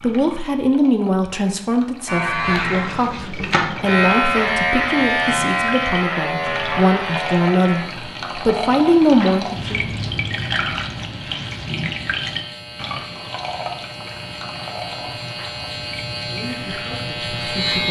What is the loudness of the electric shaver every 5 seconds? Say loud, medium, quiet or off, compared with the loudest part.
loud, loud, quiet, medium.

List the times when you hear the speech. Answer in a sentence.
The speech can be heard from 0.0 to 9.8 s and from 16.2 to 17.8 s.